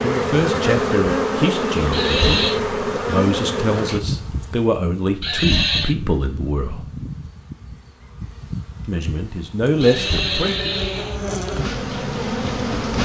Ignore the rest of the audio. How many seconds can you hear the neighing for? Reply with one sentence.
You can hear the neighing for 3 seconds altogether.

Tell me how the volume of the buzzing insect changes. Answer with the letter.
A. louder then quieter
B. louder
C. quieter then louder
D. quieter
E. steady
C.